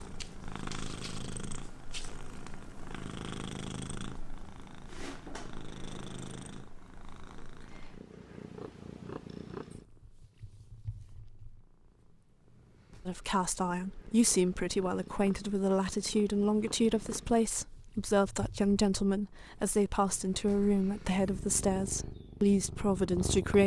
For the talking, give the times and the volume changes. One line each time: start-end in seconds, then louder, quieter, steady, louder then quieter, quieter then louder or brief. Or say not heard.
13.1-23.6 steady.